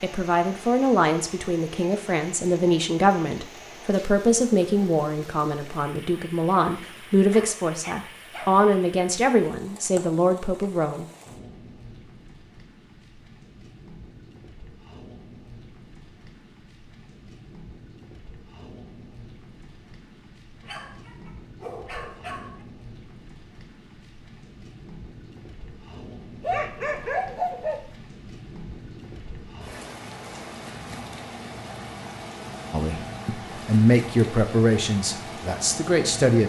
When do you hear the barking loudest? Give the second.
27 s.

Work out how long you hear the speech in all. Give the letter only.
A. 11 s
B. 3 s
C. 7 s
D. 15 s
D.